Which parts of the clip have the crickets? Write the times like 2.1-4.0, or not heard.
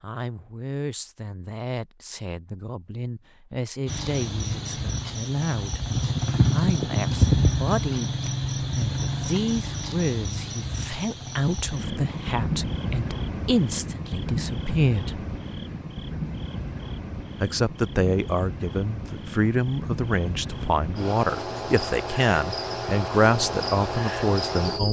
3.9-24.8.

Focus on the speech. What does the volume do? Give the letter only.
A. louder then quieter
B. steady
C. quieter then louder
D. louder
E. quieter
D.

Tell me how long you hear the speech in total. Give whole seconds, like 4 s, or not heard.
22 s.